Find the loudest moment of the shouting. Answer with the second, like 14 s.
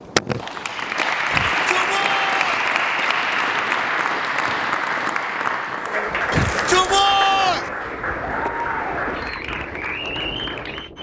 7 s.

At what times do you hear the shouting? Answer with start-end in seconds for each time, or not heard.
1.3-2.6, 6.3-7.7.